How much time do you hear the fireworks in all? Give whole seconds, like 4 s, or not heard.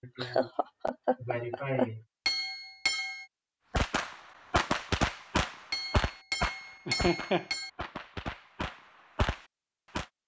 6 s.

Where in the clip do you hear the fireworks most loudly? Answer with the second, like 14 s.
5 s.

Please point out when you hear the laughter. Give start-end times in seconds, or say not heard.
0.0-2.0, 6.8-7.5.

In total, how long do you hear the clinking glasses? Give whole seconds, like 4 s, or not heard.
3 s.